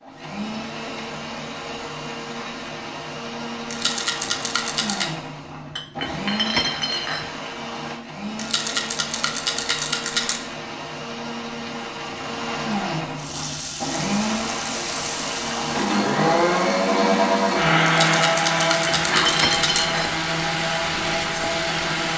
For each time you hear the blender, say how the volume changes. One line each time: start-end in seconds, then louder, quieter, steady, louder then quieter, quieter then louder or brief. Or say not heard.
0.0-22.1 louder.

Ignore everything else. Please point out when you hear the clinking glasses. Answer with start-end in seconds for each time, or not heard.
5.7-7.3, 18.6-20.1.